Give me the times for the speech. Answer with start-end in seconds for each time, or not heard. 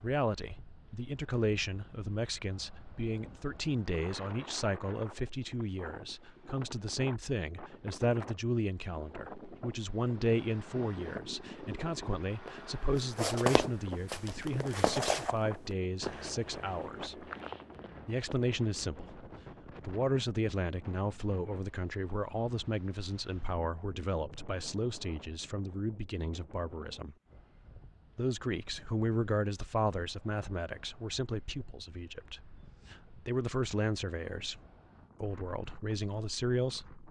0.0-17.2, 18.1-19.2, 19.9-27.1, 28.1-34.6, 35.2-37.0.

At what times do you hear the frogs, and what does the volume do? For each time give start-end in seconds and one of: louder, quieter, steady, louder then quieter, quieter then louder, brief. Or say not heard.
not heard.